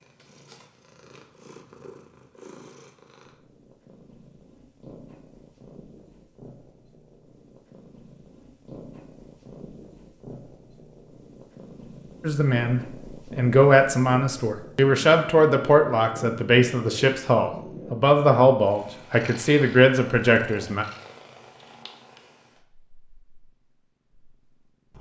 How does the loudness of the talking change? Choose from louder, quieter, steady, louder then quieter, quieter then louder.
steady.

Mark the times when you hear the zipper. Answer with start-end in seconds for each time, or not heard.
not heard.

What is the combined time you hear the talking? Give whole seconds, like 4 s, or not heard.
9 s.